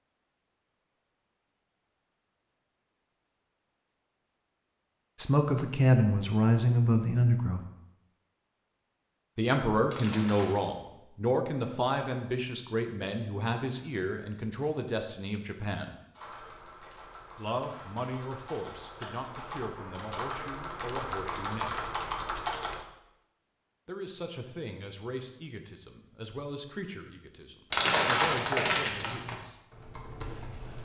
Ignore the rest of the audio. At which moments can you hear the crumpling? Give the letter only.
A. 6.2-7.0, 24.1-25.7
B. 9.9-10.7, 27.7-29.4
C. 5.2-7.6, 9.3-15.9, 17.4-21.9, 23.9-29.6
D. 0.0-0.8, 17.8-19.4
B.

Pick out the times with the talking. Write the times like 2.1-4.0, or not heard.
5.2-7.6, 9.3-15.9, 17.4-21.9, 23.9-29.6.